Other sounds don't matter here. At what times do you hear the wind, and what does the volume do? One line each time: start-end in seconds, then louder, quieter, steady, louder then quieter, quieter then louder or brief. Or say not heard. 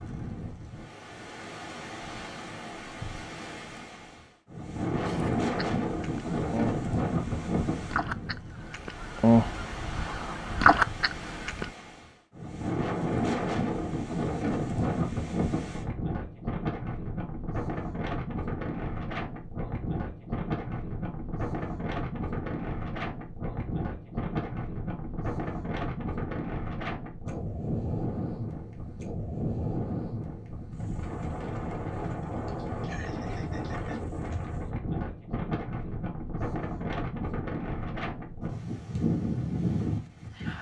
0.0-40.5 steady.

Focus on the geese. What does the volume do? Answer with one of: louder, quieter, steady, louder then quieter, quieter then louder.
louder.